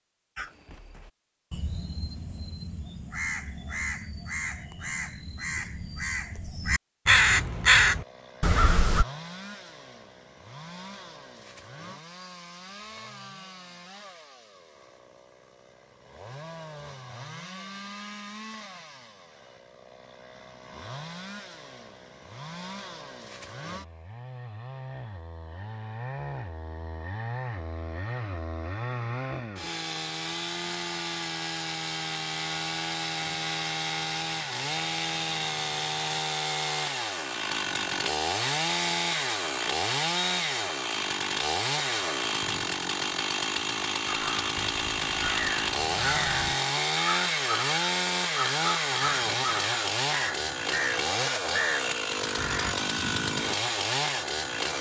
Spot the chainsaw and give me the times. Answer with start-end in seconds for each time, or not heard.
7.8-54.7.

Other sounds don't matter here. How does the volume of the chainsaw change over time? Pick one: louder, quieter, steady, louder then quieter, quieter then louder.
louder.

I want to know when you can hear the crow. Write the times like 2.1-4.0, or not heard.
0.3-9.1, 44.0-52.8.